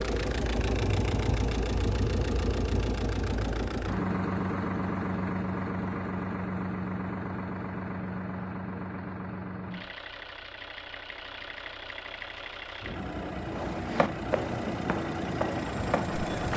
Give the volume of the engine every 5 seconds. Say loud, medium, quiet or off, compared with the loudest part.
loud, loud, medium, loud.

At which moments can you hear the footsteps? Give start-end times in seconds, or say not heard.
13.5-16.5.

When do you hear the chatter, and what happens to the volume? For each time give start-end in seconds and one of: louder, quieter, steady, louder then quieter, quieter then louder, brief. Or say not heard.
not heard.